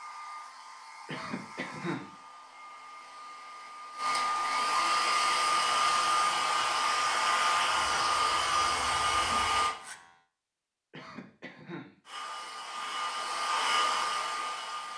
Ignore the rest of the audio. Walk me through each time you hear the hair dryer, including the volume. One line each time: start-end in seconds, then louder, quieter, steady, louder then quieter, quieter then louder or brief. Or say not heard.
0.0-9.8 louder
12.1-14.9 brief.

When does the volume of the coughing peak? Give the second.
2 s.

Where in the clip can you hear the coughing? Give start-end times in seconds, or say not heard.
1.1-2.1, 10.9-11.9.